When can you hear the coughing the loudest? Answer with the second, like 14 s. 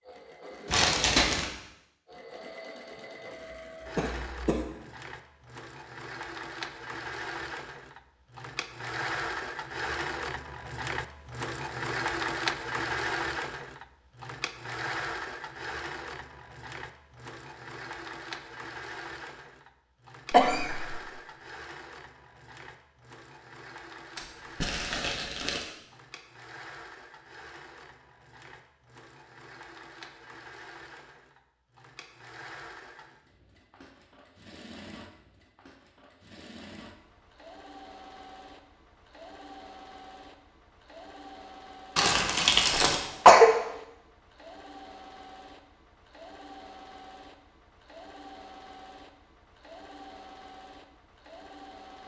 43 s.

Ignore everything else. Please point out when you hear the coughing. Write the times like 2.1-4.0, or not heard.
4.0-4.7, 20.3-21.0, 42.7-43.5.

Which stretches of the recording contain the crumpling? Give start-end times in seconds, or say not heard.
0.7-1.4, 24.1-25.7, 42.0-43.0.